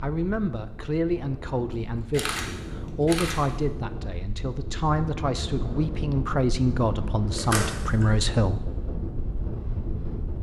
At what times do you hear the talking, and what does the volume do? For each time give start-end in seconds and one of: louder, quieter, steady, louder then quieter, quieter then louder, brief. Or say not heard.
0.0-8.7 steady.